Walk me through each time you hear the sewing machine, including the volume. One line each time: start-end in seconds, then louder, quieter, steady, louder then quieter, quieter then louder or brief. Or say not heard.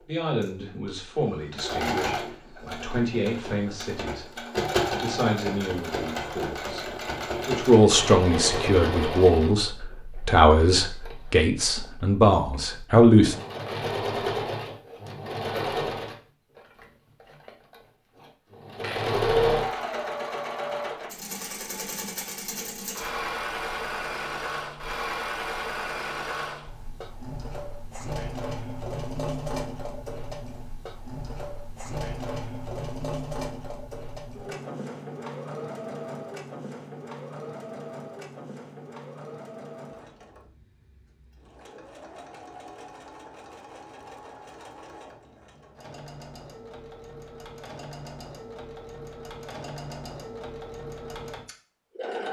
0.4-52.2 quieter.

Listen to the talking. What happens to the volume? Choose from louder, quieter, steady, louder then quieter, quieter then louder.
louder.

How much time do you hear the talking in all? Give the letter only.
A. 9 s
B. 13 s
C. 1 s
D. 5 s
B.